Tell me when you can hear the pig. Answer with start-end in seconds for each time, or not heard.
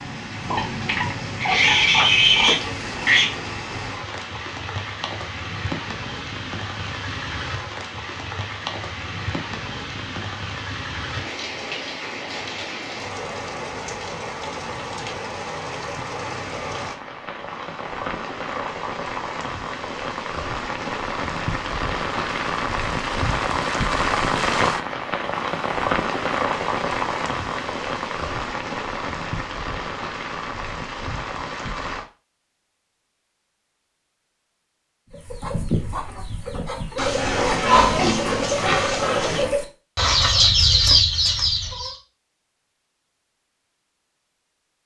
0.5-3.3, 37.0-39.5.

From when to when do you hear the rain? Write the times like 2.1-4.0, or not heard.
0.0-32.0.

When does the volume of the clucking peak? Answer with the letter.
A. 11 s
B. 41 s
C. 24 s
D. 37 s
B.